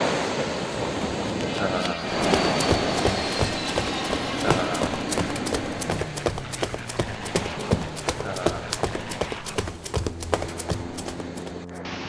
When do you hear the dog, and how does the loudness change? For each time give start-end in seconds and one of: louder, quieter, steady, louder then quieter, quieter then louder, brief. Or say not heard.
not heard.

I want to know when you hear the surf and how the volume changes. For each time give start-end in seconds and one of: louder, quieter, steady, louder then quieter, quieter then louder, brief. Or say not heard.
0.0-12.0 quieter.